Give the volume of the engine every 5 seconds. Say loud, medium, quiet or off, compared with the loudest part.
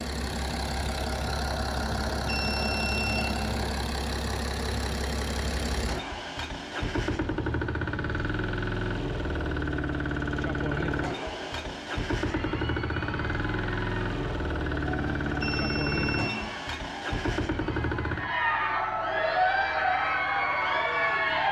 loud, loud, loud, loud, quiet.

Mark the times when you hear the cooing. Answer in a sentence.
The cooing can't be heard in this clip.